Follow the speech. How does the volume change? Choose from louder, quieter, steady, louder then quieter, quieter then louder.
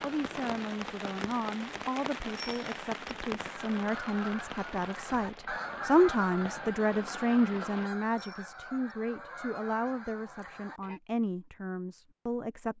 louder then quieter.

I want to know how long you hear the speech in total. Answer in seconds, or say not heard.
13 s.